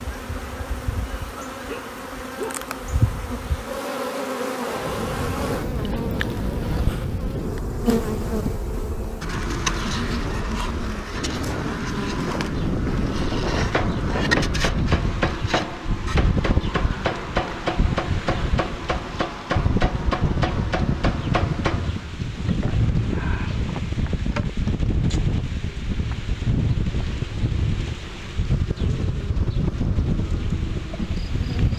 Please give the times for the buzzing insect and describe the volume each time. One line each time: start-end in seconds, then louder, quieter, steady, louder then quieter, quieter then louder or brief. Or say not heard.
0.0-31.7 quieter.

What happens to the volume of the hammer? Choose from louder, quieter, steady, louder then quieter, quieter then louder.
steady.